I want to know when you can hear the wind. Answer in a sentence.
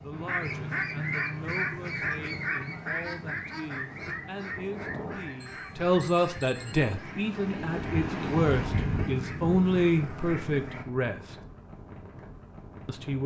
You can hear the wind from 0.0 to 13.2 s.